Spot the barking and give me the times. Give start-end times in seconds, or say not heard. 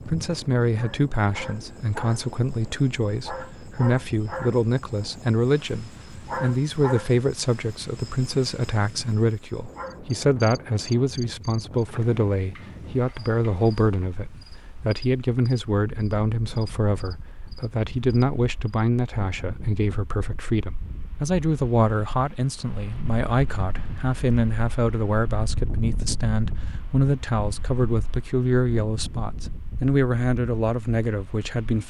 not heard.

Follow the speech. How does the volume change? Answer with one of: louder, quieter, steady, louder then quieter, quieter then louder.
steady.